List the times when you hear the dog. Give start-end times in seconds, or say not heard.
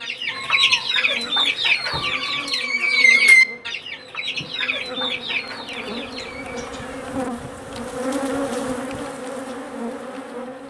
not heard.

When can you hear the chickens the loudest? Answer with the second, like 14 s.
3 s.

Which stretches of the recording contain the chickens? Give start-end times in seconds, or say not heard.
0.0-6.7.